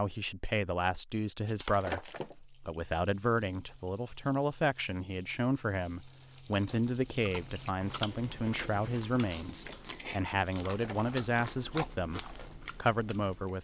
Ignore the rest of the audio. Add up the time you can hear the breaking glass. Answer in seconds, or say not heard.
2 s.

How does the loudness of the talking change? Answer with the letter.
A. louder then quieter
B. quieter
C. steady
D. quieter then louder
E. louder
C.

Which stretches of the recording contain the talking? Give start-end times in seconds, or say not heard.
0.0-13.5.